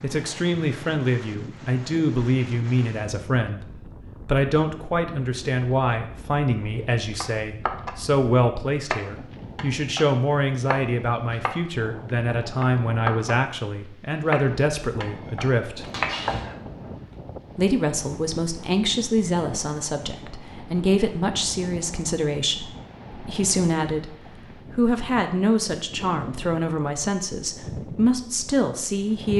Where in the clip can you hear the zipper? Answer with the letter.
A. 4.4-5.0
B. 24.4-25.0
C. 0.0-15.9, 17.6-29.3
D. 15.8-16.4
D.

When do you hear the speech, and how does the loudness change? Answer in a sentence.
The speech can be heard from 0.0 to 15.9 s, at a steady volume; and from 17.6 to 29.3 s, at a steady volume.